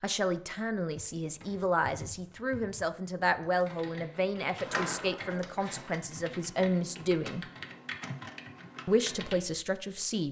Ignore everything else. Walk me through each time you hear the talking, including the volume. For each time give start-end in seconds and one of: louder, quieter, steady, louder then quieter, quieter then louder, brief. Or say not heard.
0.0-7.5 steady
8.8-10.2 brief.